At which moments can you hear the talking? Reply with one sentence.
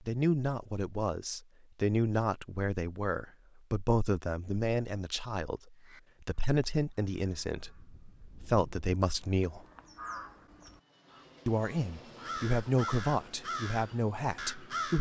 The talking can be heard from 0.1 to 9.6 s and from 11.4 to 14.9 s.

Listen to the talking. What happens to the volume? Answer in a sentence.
The volume of the talking stays about the same.